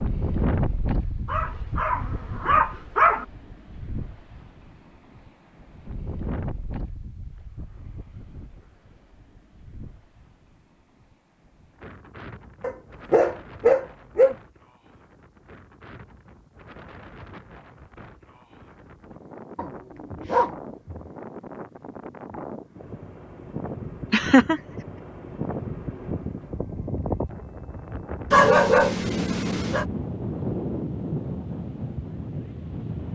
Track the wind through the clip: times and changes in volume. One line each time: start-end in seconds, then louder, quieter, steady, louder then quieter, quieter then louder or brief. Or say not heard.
0.0-33.0 quieter then louder.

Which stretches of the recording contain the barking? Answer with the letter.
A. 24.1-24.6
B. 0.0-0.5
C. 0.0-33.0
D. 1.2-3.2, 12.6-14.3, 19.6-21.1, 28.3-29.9
D.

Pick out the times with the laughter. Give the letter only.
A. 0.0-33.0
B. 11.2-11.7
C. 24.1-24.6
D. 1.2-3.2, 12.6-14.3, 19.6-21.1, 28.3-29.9
C.